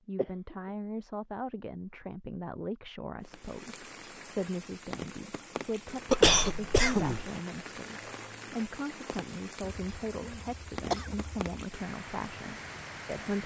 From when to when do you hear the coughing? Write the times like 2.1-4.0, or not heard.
0.1-0.7, 6.1-7.3, 9.6-11.4.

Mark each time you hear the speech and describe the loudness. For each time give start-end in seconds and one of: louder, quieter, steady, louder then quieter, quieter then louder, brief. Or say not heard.
0.1-13.4 steady.